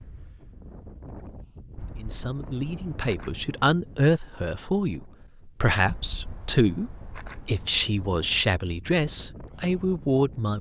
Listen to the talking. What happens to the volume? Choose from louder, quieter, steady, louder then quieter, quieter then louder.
steady.